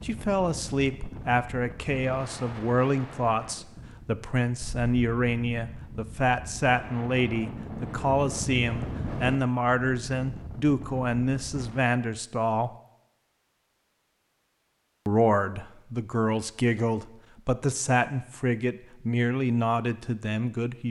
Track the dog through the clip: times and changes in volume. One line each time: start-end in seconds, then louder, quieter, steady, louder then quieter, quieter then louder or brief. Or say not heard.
not heard.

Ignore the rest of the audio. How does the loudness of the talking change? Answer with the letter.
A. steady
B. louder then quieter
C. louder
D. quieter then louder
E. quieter
A.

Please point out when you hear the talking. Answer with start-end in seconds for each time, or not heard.
0.0-12.7, 15.1-20.8.